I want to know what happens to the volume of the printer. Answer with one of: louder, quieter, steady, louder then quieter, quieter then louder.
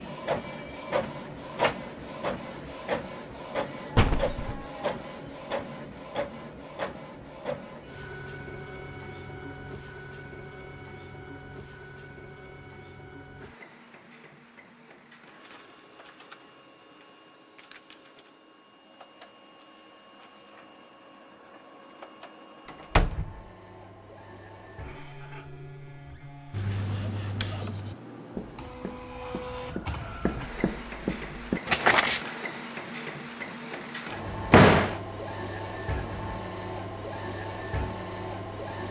quieter then louder.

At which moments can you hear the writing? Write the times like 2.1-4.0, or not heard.
26.5-32.2.